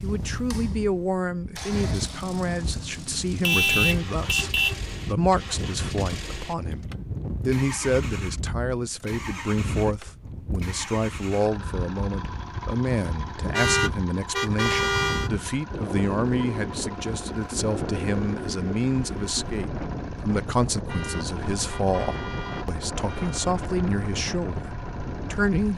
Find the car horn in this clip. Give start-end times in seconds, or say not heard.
3.4-4.8, 13.5-15.3, 20.9-23.6.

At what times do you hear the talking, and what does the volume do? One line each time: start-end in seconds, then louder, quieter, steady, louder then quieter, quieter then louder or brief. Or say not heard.
0.0-25.7 steady.